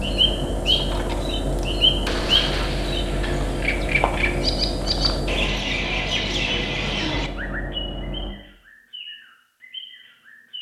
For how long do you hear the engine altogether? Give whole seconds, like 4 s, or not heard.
8 s.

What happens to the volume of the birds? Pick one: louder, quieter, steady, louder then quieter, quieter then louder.
quieter.